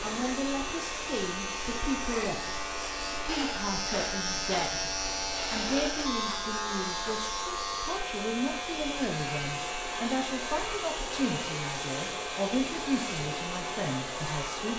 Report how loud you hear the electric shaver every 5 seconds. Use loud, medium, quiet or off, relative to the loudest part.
loud, loud, medium.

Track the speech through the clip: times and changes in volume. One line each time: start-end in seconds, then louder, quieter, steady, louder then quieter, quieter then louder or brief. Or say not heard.
0.0-14.7 steady.